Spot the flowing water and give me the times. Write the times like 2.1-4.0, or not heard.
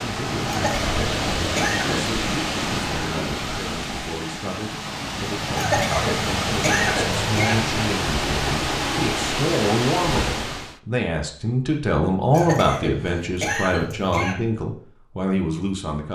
0.0-10.8.